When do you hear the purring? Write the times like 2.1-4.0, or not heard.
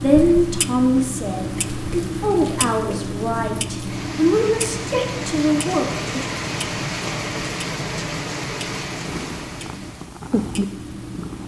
9.1-11.4.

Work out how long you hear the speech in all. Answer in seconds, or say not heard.
6 s.